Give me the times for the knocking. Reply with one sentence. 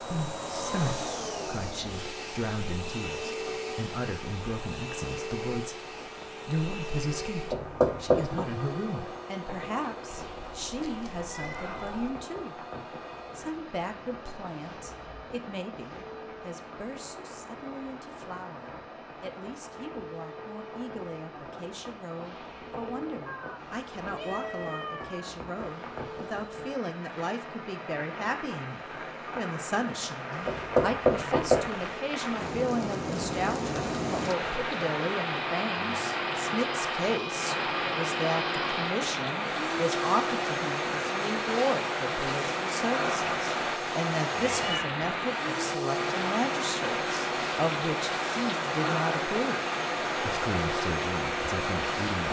The knocking can be heard from 7.5 to 8.4 s and from 30.4 to 31.6 s.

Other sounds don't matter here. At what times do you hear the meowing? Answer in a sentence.
You can hear the meowing from 10.1 to 12.1 s, from 23.2 to 25.4 s and from 44.4 to 44.9 s.